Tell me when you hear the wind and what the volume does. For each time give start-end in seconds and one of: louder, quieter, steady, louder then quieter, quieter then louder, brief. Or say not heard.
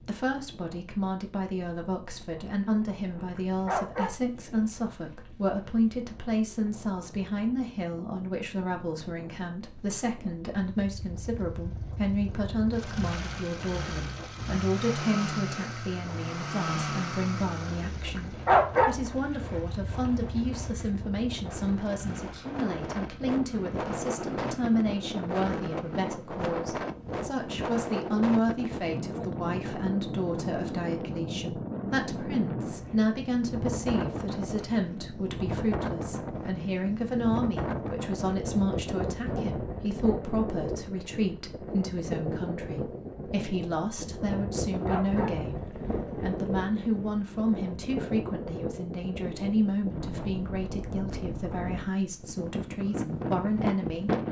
0.0-54.2 louder.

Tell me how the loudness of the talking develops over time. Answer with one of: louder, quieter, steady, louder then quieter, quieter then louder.
steady.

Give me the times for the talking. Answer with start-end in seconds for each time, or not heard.
0.0-54.2.